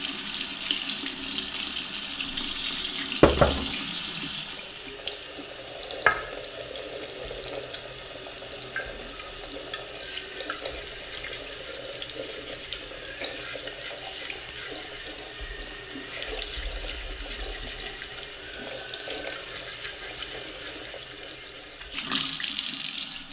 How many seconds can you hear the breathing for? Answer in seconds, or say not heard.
not heard.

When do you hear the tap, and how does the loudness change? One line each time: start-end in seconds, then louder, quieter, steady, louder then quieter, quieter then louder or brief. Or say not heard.
0.0-23.2 steady.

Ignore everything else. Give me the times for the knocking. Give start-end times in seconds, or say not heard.
3.2-3.8.